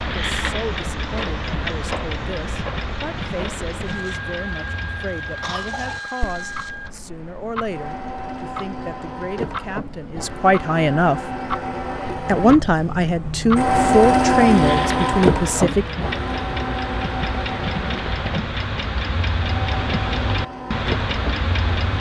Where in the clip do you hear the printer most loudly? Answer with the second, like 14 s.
14 s.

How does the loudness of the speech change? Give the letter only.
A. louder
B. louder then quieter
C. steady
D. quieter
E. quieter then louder
A.